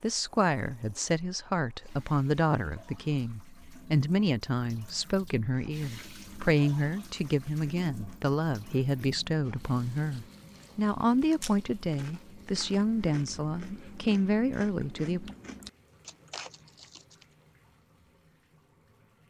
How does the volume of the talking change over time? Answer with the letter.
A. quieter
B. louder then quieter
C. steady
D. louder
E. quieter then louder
C.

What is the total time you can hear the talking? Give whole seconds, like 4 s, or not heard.
15 s.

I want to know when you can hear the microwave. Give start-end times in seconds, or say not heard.
not heard.